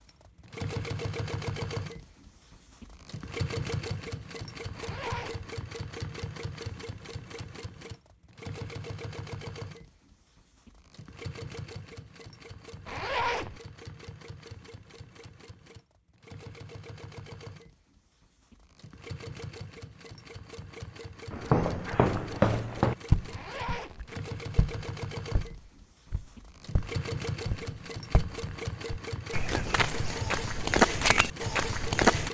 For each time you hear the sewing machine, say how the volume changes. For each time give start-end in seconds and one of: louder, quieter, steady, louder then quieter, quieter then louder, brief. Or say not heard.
0.0-32.2 quieter then louder.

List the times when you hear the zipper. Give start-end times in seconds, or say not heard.
4.7-5.5, 12.8-13.6, 23.3-24.1.